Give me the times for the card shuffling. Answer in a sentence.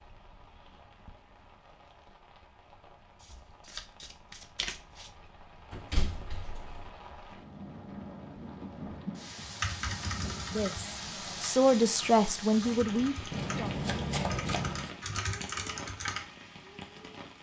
The card shuffling can be heard from 3.2 to 5.1 s and from 13.3 to 14.9 s.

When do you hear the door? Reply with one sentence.
You can hear the door from 5.7 to 6.8 s.